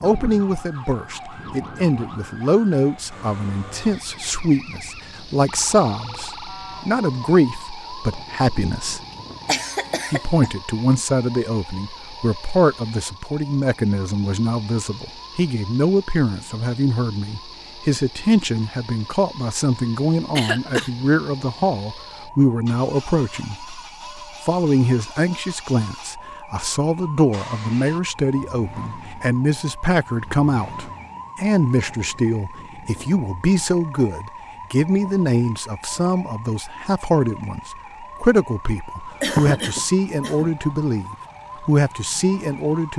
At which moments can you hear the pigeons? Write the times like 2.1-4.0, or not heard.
not heard.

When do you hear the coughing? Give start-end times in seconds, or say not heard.
9.4-10.5, 20.4-20.9, 39.2-40.5.